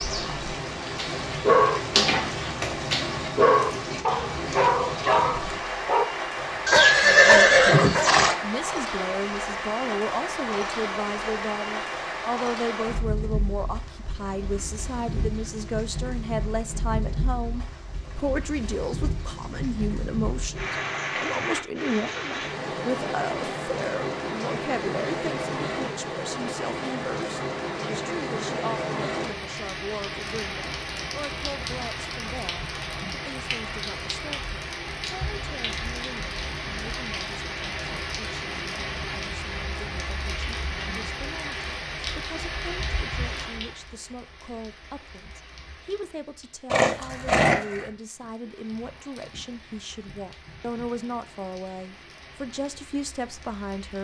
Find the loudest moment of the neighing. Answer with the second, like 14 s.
7 s.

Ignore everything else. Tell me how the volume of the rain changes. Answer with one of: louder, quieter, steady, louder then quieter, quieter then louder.
quieter.